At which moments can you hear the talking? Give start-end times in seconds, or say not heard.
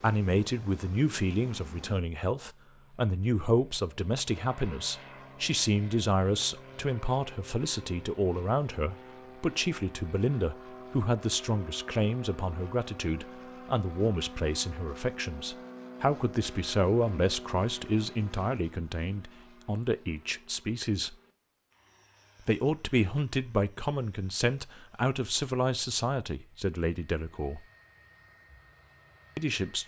0.0-21.1, 22.4-27.6, 29.4-29.8.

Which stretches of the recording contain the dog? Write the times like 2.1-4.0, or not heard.
not heard.